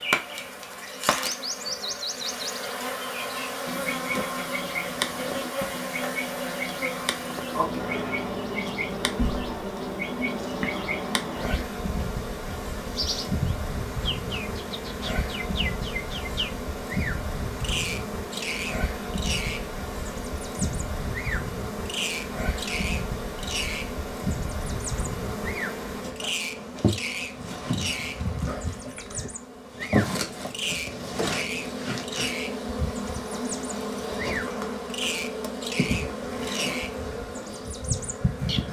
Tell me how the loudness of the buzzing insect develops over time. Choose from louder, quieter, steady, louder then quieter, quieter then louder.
steady.